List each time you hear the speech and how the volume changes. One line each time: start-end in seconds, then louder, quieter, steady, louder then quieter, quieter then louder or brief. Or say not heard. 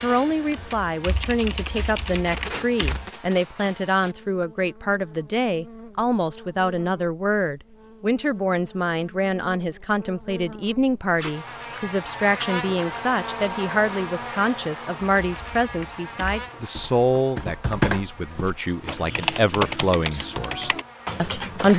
0.0-21.7 steady.